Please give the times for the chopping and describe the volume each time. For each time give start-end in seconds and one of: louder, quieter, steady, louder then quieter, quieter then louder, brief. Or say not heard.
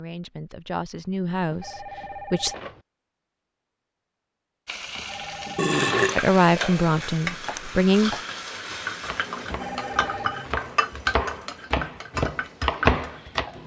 7.5-13.4 quieter then louder.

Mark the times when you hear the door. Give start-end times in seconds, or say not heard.
not heard.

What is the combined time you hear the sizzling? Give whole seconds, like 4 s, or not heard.
9 s.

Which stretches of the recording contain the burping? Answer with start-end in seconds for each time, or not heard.
5.5-7.6.